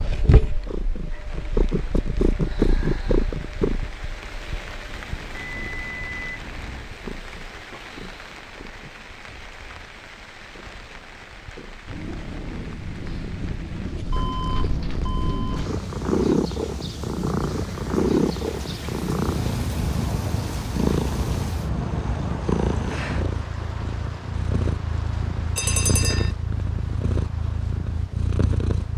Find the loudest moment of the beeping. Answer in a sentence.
The loudest moment of the beeping is at 26 seconds.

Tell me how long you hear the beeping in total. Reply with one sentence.
The beeping can be heard for 4 seconds in total.